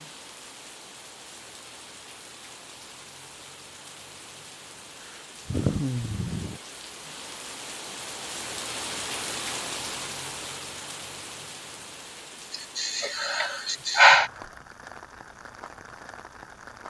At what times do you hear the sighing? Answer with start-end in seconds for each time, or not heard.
5.5-6.6, 12.5-14.3.